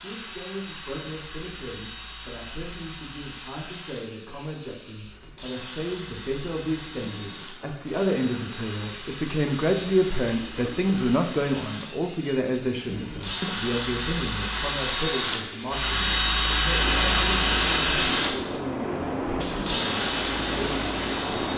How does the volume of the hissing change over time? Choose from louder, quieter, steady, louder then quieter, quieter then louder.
louder.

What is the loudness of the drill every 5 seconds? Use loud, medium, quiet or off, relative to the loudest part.
quiet, quiet, medium, loud, medium.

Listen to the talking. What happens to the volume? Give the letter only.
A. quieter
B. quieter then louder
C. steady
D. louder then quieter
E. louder
D.